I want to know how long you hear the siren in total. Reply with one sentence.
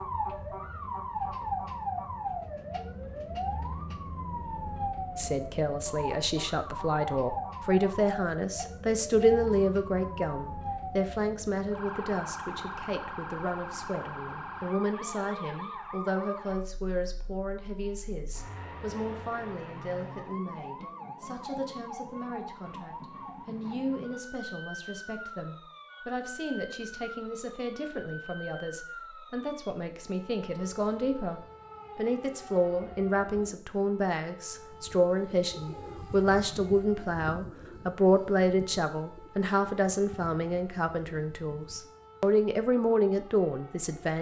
You can hear the siren for 44 seconds altogether.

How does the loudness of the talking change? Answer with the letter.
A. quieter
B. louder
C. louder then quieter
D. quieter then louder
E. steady
D.